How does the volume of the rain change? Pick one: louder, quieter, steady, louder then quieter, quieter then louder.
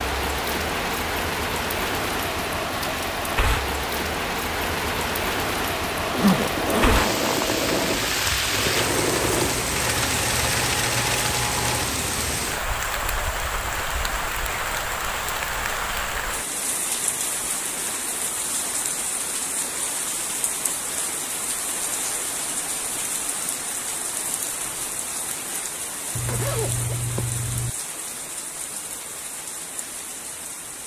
quieter.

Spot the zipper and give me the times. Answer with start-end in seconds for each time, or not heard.
6.0-8.0, 26.1-27.7.